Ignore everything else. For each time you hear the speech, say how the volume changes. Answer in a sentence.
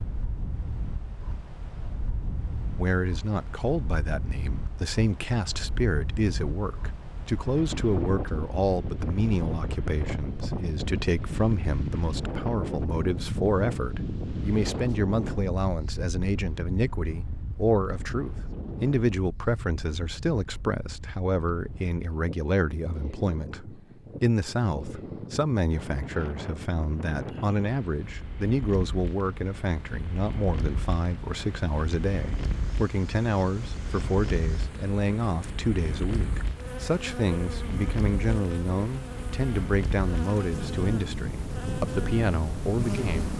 You can hear the speech from 2.8 to 43.3 s, at a steady volume.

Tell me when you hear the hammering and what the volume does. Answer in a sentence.
You can't hear the hammering here.